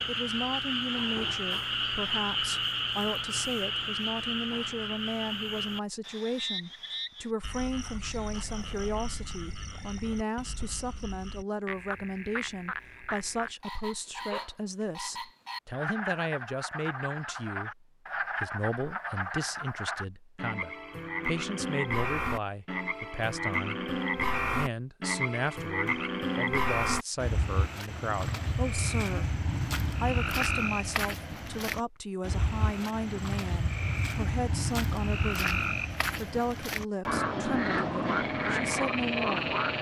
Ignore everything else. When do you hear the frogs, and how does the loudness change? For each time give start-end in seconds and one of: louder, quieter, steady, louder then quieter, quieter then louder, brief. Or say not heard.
0.0-39.7 quieter then louder.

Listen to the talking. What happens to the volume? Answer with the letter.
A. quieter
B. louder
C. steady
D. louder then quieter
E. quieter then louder
C.